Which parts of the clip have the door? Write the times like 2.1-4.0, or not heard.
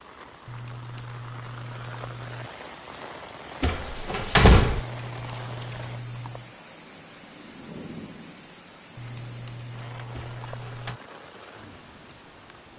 3.6-4.8, 10.1-10.9.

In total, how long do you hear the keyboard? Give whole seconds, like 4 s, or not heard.
6 s.